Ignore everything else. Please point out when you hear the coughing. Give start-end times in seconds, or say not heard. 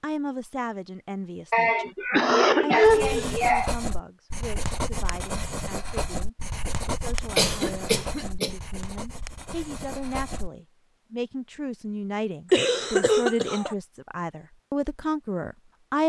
1.5-3.7, 7.3-8.5, 12.5-13.8.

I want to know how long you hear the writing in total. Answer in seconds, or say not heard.
8 s.